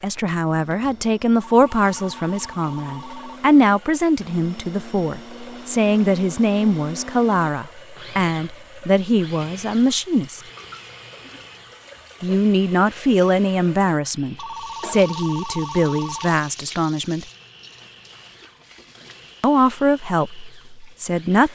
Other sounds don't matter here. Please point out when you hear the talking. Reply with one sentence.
You can hear the talking from 0.0 to 10.4 s, from 12.2 to 17.2 s and from 19.4 to 21.5 s.